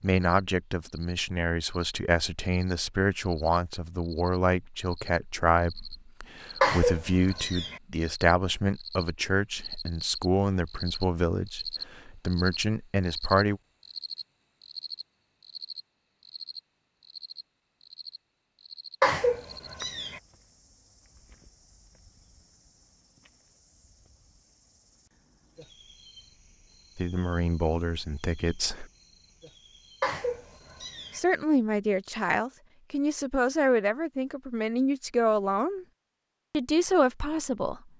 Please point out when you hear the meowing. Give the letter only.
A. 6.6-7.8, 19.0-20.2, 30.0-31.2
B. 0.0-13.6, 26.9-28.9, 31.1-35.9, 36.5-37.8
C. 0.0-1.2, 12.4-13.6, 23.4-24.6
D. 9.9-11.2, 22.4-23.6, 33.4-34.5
A.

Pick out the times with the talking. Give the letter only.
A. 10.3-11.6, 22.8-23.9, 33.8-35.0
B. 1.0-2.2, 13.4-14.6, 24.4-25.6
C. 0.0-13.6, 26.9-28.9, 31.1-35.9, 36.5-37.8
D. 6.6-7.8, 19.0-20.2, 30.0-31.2
C.